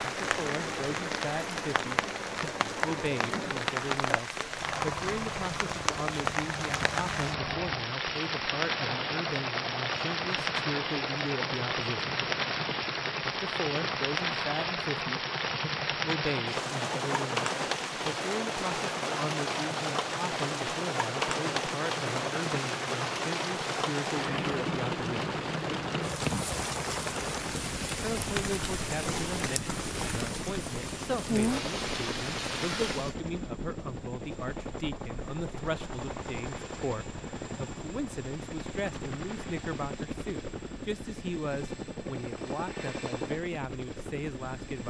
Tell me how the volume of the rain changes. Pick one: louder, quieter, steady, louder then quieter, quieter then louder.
steady.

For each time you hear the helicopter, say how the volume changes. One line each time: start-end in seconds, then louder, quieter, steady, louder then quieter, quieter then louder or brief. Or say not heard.
0.0-44.8 steady.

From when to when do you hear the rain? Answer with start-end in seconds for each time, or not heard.
0.0-33.1.